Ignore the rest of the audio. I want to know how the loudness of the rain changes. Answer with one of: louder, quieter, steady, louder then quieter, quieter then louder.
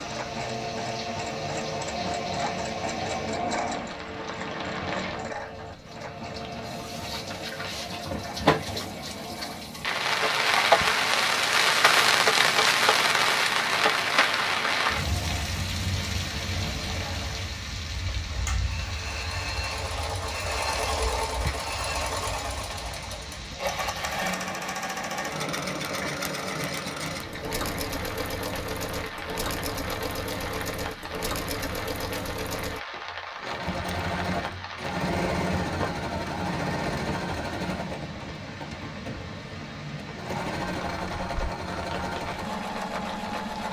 louder then quieter.